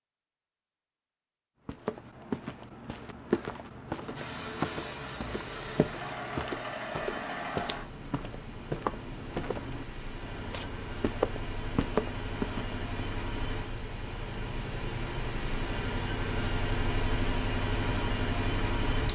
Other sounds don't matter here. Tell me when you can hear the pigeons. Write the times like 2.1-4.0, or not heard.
not heard.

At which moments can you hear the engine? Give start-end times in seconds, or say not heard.
4.2-19.0.